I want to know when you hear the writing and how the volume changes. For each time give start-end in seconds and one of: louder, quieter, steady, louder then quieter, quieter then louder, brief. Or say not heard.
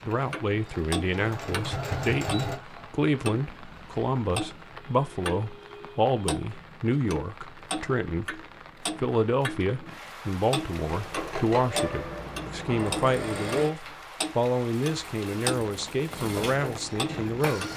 not heard.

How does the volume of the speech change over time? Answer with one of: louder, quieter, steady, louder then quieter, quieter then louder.
steady.